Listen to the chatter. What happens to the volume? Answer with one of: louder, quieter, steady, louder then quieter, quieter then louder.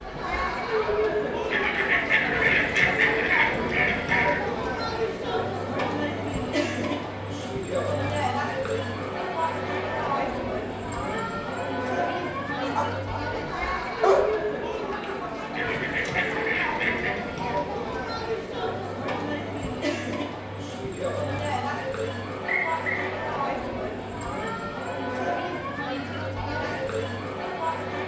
steady.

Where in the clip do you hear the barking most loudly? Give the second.
14 s.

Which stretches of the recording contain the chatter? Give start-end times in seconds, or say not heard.
0.0-28.0.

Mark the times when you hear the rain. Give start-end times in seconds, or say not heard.
not heard.